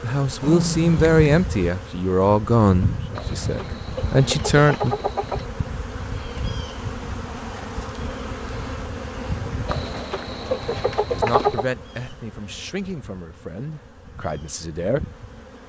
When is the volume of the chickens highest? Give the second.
11 s.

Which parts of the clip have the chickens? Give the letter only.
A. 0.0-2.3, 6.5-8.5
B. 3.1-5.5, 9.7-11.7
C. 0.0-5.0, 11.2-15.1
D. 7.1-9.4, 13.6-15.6
B.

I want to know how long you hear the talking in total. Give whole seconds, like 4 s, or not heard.
9 s.